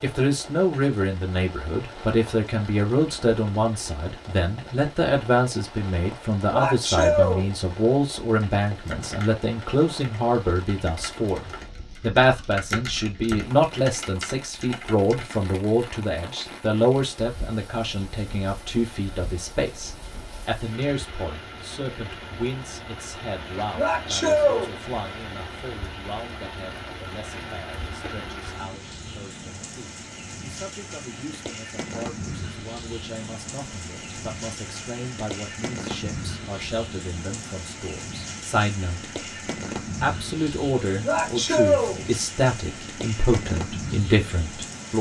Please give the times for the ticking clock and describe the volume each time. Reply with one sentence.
The ticking clock can't be heard in this clip.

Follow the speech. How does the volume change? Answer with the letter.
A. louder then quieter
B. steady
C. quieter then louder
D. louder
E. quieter
C.